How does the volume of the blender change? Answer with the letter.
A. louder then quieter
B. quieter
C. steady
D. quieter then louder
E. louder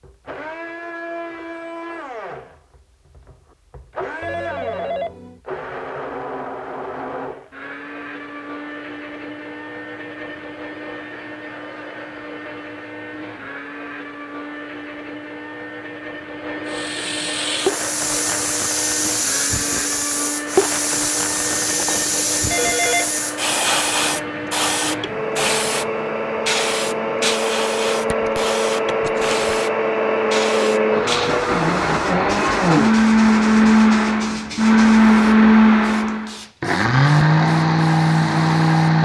E.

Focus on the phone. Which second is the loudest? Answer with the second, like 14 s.
23 s.